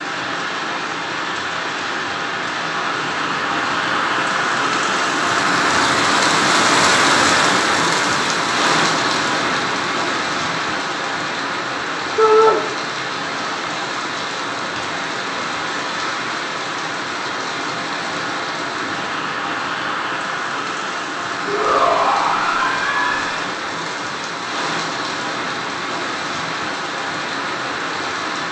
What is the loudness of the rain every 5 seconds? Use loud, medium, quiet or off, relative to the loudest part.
medium, loud, medium, medium, medium, medium.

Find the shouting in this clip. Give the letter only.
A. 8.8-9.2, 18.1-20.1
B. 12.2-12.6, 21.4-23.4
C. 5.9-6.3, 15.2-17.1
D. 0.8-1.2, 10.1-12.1
B.